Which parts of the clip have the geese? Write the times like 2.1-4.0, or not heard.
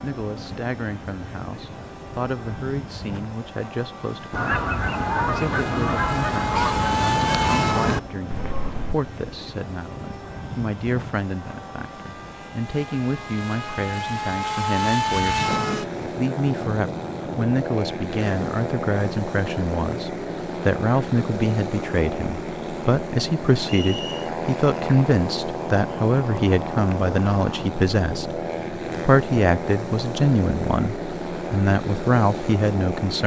4.3-8.9.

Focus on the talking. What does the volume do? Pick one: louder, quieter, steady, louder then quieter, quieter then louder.
louder.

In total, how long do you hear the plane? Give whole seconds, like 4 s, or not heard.
33 s.